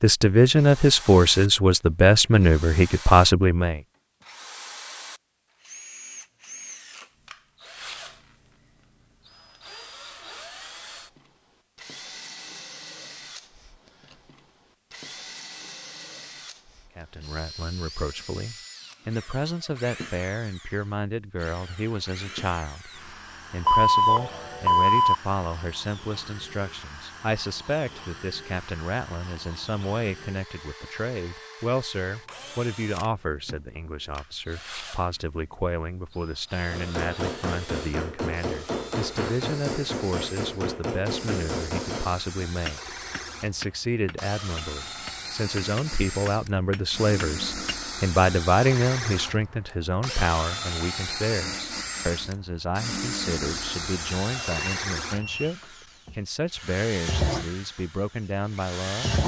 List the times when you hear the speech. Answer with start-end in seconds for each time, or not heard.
0.0-3.8, 16.9-59.1.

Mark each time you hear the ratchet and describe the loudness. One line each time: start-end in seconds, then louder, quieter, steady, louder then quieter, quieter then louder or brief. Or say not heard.
not heard.